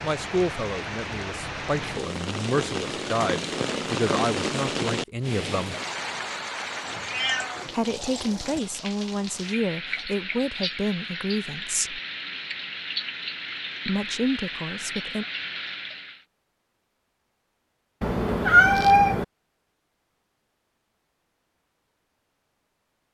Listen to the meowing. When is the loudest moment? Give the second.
19 s.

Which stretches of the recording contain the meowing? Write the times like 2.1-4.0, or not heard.
7.0-8.7, 18.0-19.2.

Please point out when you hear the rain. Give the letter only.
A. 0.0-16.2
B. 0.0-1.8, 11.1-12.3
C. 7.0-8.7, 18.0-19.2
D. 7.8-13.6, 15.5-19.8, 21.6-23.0
A.